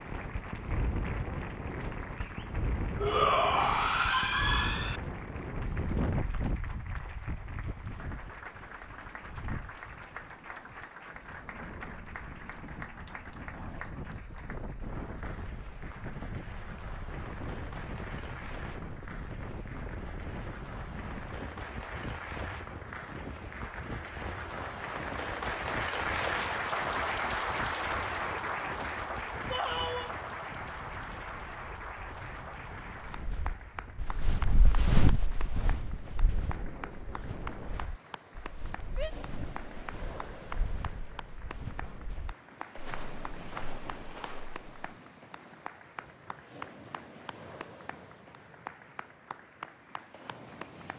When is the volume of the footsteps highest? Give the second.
35 s.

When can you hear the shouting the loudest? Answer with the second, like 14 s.
3 s.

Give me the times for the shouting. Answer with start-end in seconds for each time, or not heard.
3.0-5.0, 29.5-30.1, 38.9-39.3.